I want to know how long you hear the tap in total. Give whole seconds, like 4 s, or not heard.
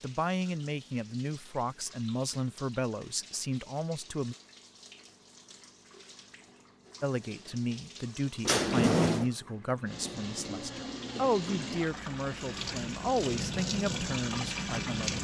15 s.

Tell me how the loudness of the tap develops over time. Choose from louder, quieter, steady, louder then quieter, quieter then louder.
louder.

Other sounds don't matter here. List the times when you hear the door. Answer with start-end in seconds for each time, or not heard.
8.4-9.3.